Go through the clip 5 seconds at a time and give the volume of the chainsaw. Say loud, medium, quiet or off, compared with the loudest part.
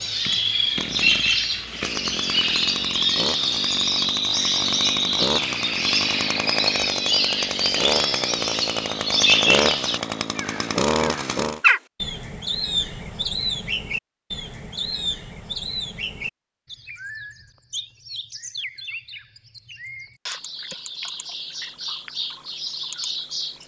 medium, loud, loud, off, off.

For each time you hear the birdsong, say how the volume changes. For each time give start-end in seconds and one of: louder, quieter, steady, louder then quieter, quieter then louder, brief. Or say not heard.
0.0-23.6 quieter.